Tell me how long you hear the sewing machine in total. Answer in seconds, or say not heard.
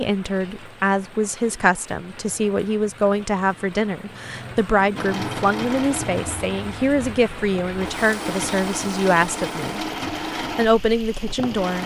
7 s.